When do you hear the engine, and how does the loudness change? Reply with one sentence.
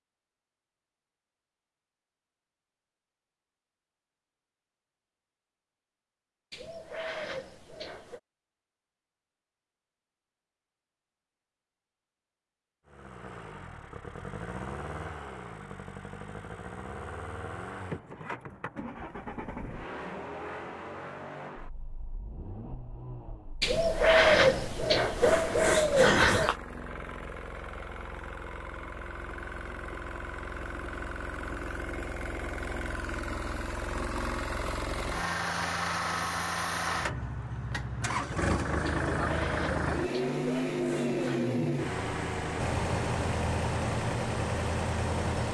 The engine can be heard from 12.8 to 45.4 s, getting louder.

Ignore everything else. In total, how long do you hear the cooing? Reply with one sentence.
The cooing can be heard for 7 seconds in total.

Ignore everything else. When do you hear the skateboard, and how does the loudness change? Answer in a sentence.
You can't hear the skateboard here.